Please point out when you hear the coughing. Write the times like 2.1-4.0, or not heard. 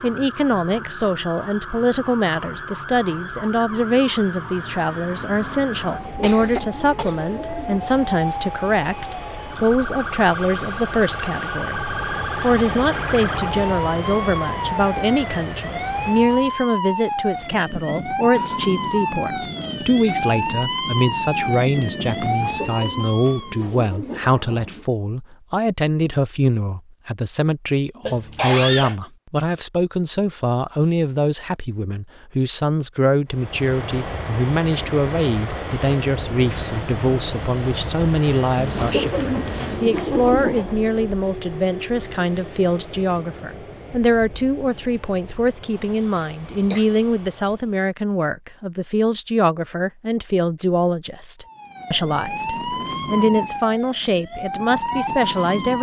6.2-7.2, 28.0-28.9, 45.7-46.9.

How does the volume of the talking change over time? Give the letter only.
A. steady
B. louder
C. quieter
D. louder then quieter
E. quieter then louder
A.